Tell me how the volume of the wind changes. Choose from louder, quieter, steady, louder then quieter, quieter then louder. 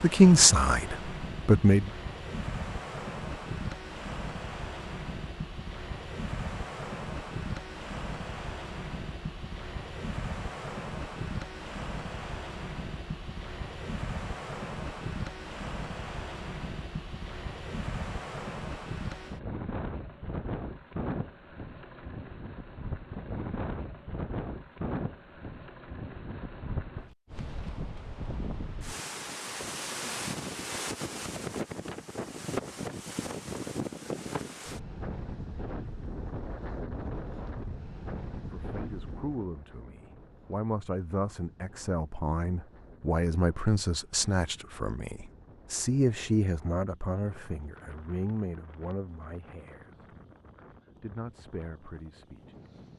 quieter.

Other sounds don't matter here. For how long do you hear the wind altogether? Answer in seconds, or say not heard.
53 s.